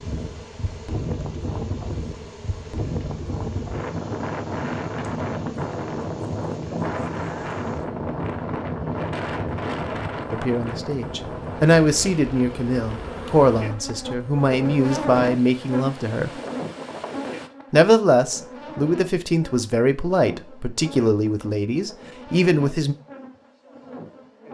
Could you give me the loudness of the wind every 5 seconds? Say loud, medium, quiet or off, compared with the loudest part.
loud, loud, medium, medium, off.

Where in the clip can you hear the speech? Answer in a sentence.
You can hear the speech from 10.3 to 16.3 s and from 17.7 to 22.9 s.